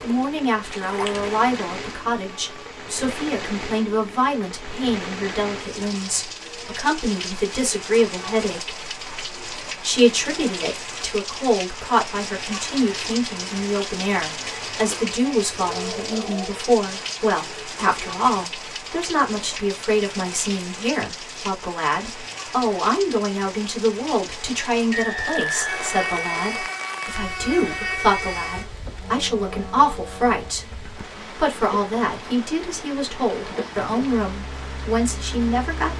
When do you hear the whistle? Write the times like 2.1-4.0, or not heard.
24.9-26.6.